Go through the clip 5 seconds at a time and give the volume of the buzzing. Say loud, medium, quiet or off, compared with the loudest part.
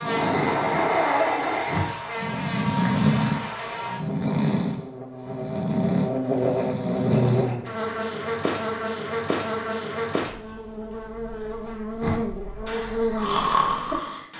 medium, loud, loud.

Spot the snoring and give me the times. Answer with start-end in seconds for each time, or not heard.
0.0-7.5, 12.0-14.3.